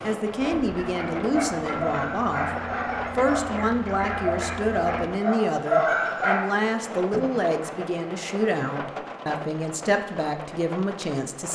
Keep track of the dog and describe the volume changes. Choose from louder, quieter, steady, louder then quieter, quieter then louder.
louder.